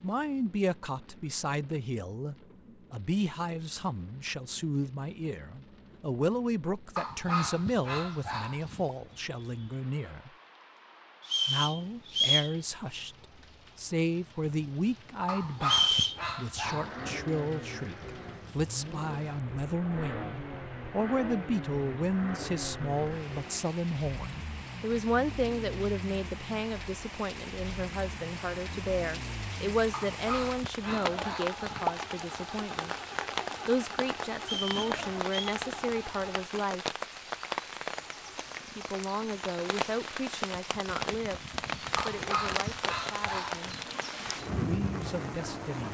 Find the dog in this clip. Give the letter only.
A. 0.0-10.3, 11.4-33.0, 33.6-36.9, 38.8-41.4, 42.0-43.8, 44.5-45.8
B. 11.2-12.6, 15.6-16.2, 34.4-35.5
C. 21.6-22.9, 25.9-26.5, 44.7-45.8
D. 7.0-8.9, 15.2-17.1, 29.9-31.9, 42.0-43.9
D.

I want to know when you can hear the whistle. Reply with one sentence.
You can hear the whistle from 11.2 to 12.6 s, from 15.6 to 16.2 s and from 34.4 to 35.5 s.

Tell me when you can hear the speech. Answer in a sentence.
The speech can be heard from 0.0 to 10.3 s, from 11.4 to 33.0 s, from 33.6 to 36.9 s, from 38.8 to 41.4 s, from 42.0 to 43.8 s and from 44.5 to 45.8 s.